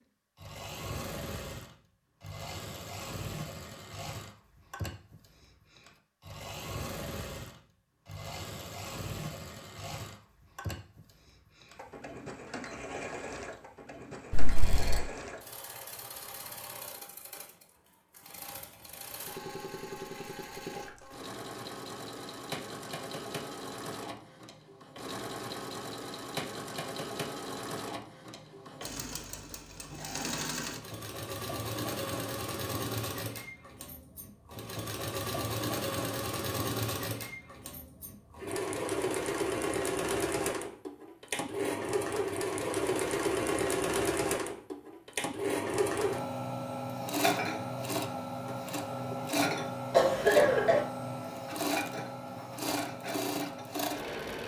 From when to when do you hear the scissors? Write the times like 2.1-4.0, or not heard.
14.3-15.0.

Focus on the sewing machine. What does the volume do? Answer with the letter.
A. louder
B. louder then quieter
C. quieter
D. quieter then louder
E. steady
A.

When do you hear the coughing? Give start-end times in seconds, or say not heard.
49.9-50.9.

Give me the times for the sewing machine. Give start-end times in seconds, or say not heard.
0.3-54.4.